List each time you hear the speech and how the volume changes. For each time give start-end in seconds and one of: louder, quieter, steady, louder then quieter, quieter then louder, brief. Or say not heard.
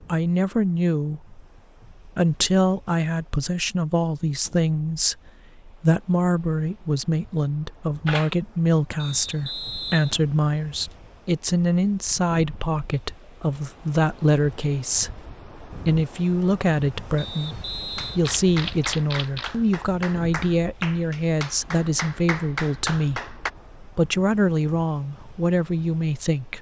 0.1-1.4 brief
2.0-26.5 steady.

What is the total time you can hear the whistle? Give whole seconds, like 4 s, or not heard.
2 s.